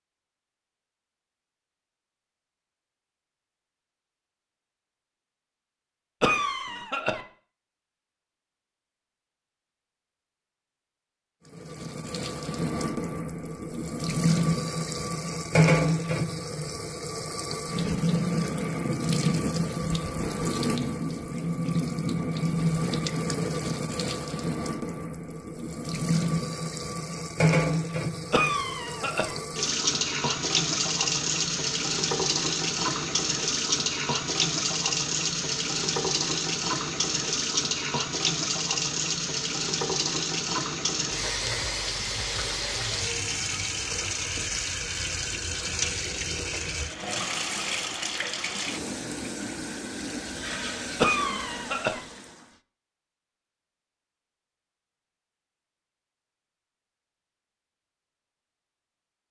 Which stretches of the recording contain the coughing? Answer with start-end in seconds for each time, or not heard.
6.2-7.2, 28.3-29.4, 51.0-52.0.